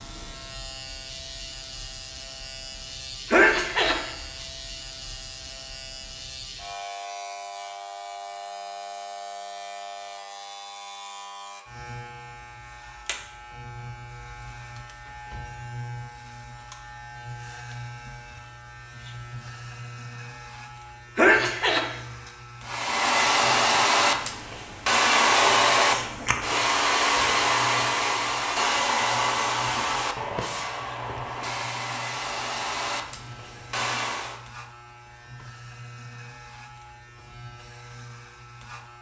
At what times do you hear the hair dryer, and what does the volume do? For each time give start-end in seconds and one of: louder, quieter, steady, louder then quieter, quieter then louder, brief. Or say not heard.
22.6-34.4 quieter.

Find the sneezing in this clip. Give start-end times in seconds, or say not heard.
3.3-4.5, 21.1-22.3.